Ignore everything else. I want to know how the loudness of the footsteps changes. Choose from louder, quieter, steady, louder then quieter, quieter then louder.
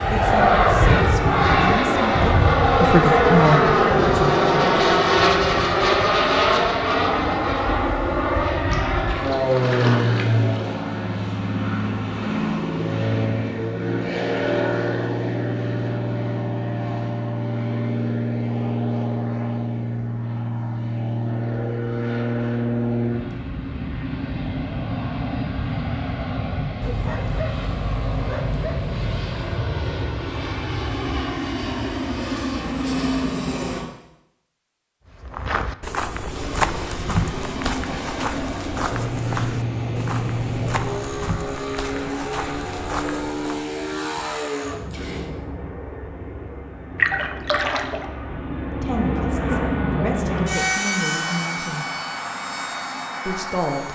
quieter.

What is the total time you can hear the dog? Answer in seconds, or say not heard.
3 s.